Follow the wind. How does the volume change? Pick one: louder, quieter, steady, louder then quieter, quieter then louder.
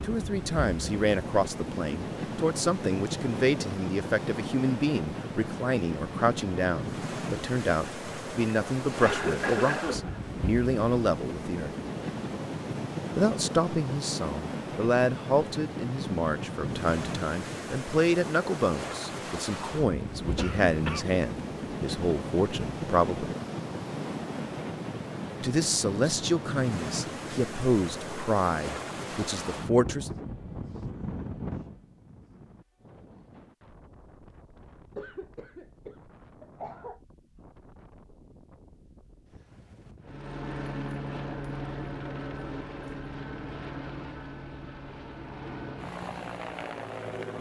quieter.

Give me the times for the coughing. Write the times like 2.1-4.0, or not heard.
9.0-10.2, 20.4-21.1, 35.0-37.0.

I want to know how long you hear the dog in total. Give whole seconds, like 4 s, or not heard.
not heard.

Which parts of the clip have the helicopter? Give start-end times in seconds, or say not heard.
40.0-47.3.